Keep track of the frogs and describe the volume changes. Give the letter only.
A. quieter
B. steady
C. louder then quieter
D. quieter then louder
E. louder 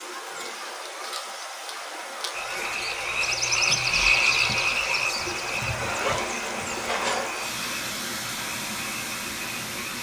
A.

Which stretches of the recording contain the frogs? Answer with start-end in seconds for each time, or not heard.
2.3-9.9.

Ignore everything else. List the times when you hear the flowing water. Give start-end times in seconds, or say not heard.
0.0-9.9.